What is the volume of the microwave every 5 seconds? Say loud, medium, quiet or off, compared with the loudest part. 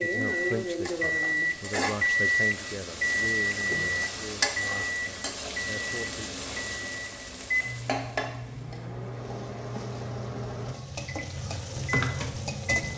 loud, medium, medium.